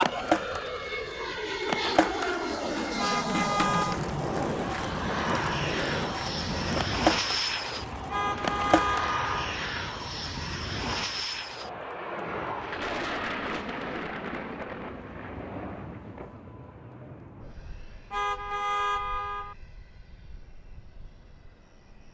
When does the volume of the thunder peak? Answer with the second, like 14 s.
13 s.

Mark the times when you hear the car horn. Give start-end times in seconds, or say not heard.
3.0-4.0, 8.1-9.3, 18.1-19.6.